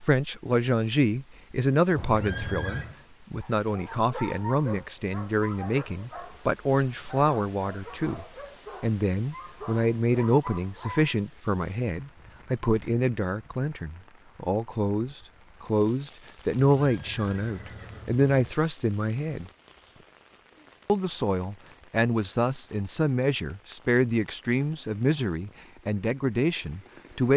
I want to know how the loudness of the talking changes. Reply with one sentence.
The volume of the talking stays about the same.